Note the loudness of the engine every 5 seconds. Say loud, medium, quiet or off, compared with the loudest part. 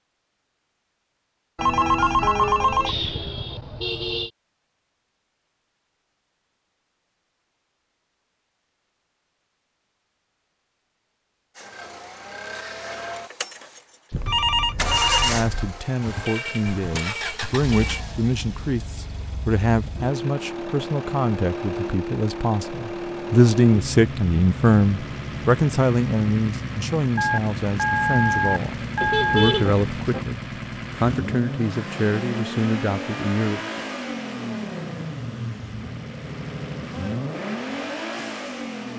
off, off, loud, loud, loud, loud, loud, loud.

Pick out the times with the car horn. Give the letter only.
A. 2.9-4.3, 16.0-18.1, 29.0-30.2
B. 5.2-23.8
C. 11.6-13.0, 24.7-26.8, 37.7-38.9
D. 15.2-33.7
A.